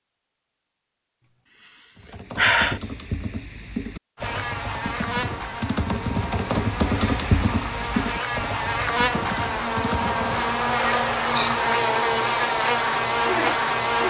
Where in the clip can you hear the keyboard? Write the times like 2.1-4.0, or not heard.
1.9-10.4.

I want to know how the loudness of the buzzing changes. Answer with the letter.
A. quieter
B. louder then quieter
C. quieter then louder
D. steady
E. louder
E.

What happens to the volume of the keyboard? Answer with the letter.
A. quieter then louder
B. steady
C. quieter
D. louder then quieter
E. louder
D.